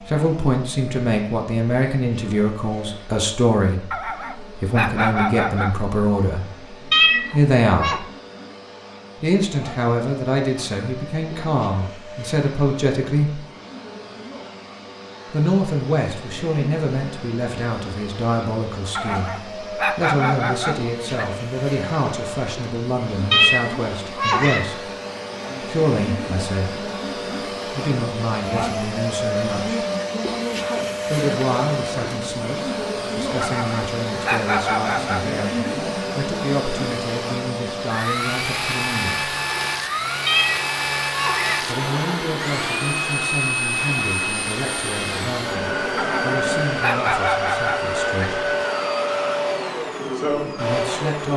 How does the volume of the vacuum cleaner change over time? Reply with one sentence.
The loudness of the vacuum cleaner goes up.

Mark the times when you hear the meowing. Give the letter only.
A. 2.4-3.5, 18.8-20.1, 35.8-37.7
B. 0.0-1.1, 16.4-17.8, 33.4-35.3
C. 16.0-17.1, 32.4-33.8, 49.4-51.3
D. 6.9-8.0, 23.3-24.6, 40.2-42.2
D.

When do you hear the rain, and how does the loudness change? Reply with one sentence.
The rain can't be heard in this clip.